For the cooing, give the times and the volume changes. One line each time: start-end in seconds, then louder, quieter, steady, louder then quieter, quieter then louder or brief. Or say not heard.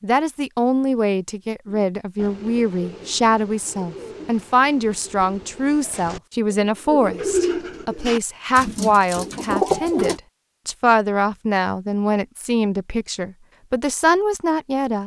1.6-10.2 louder.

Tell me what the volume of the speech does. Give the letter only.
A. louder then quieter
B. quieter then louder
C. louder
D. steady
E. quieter
D.